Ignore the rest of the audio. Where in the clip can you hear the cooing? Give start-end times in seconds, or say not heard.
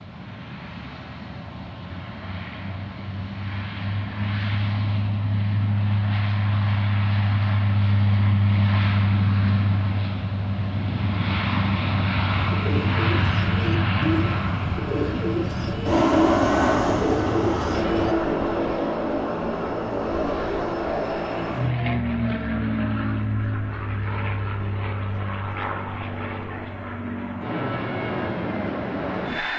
12.3-18.1.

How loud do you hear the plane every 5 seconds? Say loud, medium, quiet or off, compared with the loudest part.
medium, loud, loud, loud, loud, medium.